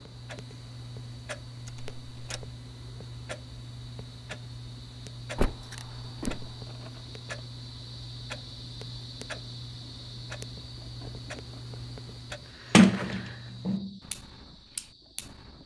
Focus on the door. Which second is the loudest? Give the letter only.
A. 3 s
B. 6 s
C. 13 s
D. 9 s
C.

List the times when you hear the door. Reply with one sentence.
The door can be heard from 1.6 to 2.5 s, from 5.3 to 6.5 s and from 12.7 to 13.9 s.